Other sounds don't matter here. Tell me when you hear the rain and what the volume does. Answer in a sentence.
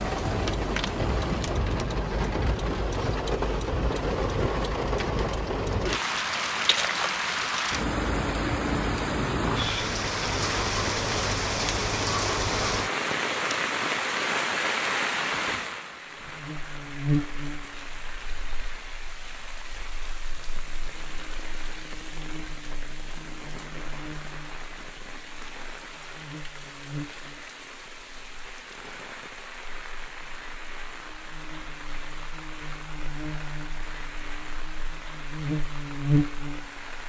You can hear the rain from 0.0 to 37.0 s, getting quieter.